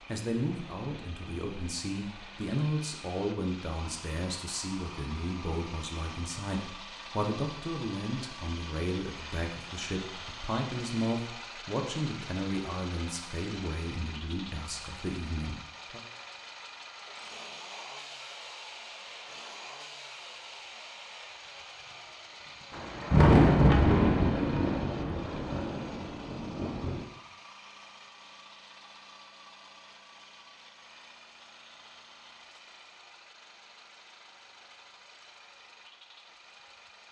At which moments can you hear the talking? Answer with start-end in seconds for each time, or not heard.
0.1-16.0.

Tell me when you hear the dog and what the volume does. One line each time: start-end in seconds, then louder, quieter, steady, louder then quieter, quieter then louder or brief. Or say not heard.
not heard.